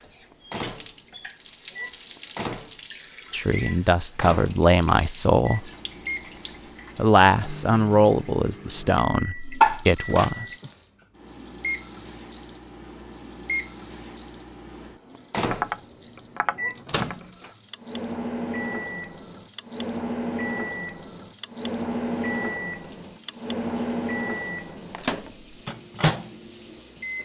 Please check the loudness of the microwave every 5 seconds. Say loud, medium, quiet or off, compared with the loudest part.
medium, medium, medium, loud, loud, loud.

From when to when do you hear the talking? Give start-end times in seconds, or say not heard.
3.3-5.7, 7.0-10.4.